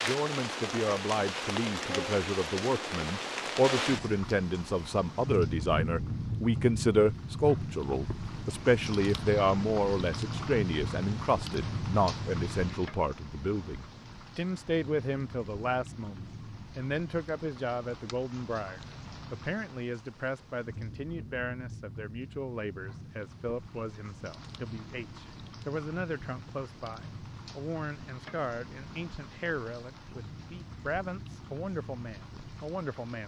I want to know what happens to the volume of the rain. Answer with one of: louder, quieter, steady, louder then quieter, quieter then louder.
quieter.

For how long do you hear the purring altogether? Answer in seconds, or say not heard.
not heard.